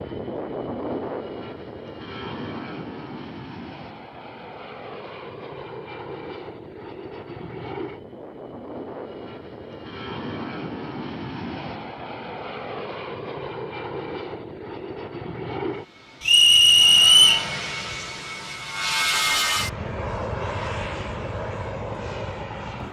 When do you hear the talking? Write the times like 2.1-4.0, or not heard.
not heard.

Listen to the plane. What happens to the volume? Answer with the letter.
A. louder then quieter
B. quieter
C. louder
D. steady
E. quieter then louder
C.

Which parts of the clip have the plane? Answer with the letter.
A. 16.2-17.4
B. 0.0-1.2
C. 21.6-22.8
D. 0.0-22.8
D.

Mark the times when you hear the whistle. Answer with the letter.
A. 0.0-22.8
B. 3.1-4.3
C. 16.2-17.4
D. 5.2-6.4
C.